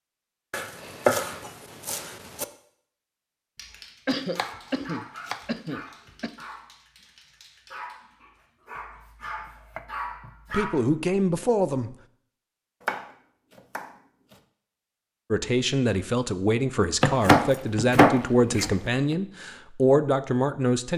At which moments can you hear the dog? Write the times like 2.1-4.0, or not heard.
3.5-10.7.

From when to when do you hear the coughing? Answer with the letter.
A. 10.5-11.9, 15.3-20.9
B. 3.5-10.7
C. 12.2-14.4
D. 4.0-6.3
D.